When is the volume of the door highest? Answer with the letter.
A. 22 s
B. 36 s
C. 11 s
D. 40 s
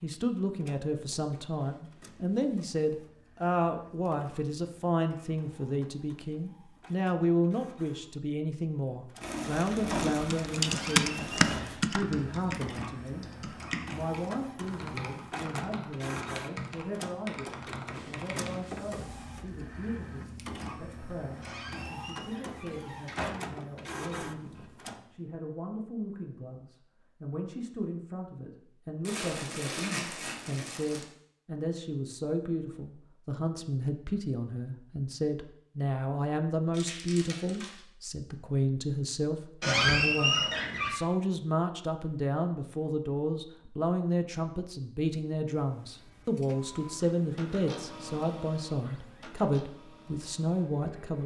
D.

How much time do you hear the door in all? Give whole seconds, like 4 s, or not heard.
4 s.